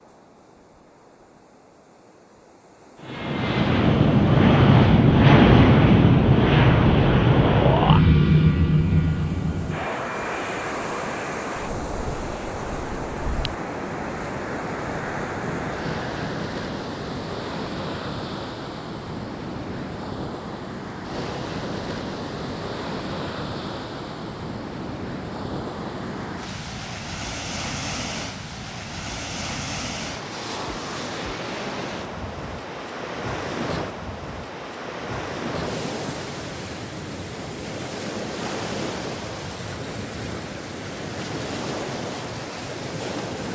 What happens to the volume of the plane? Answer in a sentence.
The volume of the plane goes down.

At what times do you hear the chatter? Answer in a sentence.
You can't hear the chatter here.